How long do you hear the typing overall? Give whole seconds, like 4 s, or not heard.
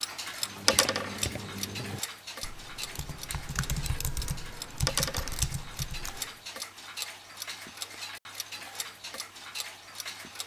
6 s.